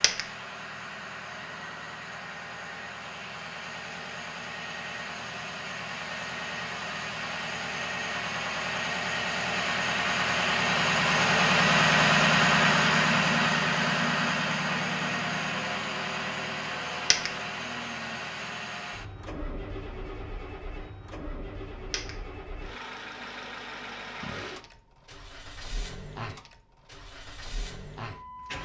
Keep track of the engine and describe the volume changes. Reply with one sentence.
The loudness of the engine goes up, then down.